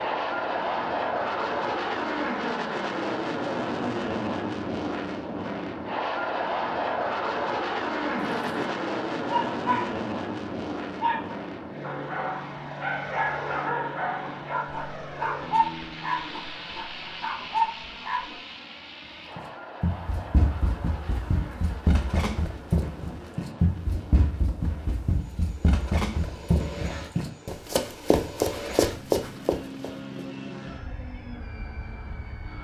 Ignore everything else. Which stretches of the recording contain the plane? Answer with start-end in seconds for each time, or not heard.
0.0-32.5.